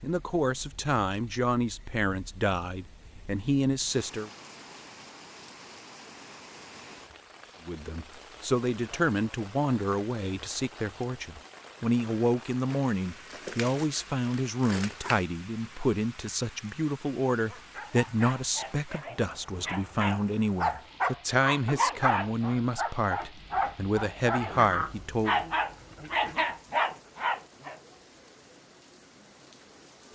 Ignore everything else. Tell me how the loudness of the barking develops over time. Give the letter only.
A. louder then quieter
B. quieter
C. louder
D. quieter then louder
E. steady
C.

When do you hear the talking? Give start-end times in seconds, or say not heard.
0.0-4.3, 7.7-25.4.